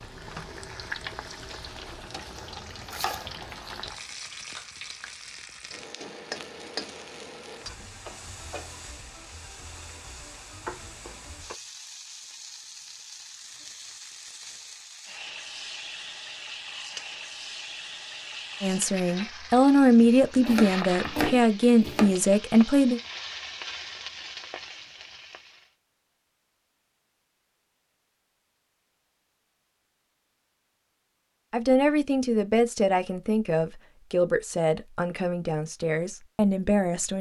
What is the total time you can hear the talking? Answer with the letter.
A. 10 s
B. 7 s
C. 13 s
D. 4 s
A.